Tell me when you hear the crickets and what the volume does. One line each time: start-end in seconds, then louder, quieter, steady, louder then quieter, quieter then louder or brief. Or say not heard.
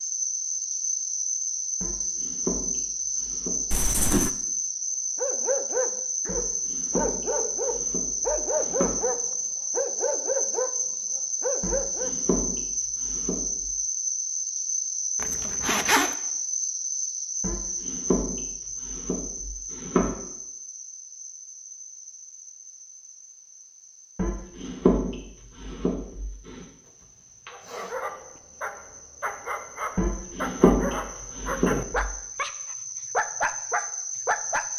0.0-34.7 quieter then louder.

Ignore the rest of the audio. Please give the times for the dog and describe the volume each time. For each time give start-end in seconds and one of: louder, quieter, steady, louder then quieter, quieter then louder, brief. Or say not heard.
5.2-12.2 steady
27.5-34.7 louder.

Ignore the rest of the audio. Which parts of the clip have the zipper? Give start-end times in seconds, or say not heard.
3.7-4.3, 15.2-16.1, 26.9-27.9.